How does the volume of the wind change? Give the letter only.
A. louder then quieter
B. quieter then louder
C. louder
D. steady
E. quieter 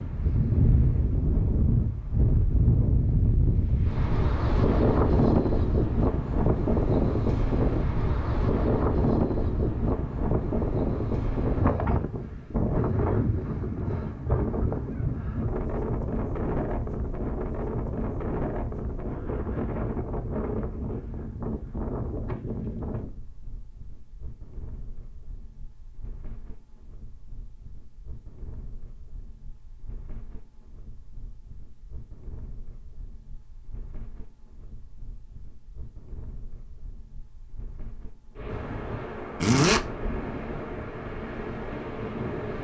B.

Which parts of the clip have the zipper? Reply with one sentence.
You can hear the zipper from 39.4 to 39.9 s.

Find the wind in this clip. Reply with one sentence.
The wind can be heard from 0.0 to 42.6 s.